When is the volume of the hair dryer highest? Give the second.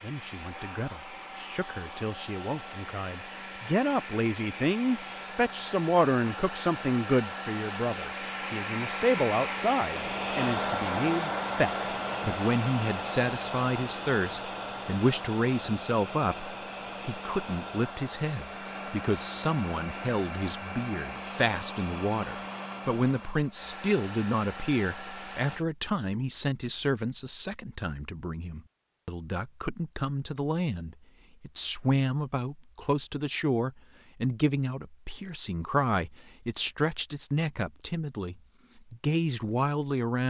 11 s.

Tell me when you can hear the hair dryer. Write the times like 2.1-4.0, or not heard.
0.0-25.6.